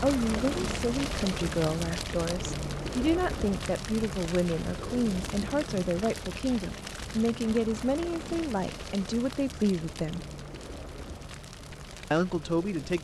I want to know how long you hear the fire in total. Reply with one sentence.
The fire can be heard for 13 seconds in total.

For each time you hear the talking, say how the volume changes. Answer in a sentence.
The talking can be heard from 0.0 to 10.2 s, at a steady volume; and briefly from 12.1 to 13.0 s.